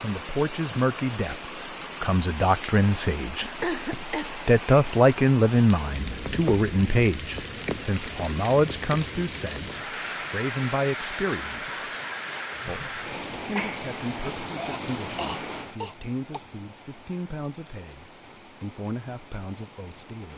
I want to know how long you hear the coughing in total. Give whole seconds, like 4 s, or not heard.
3 s.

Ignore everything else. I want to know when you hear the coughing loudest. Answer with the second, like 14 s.
4 s.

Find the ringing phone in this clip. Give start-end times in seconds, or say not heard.
not heard.